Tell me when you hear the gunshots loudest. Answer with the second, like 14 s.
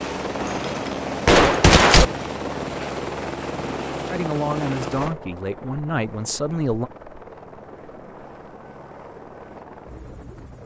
2 s.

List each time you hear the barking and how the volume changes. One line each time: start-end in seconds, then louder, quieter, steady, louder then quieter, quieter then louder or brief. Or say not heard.
not heard.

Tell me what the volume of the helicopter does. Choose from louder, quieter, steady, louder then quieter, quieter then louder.
quieter.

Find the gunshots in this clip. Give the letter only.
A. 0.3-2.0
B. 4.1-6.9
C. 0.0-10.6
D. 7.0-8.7
A.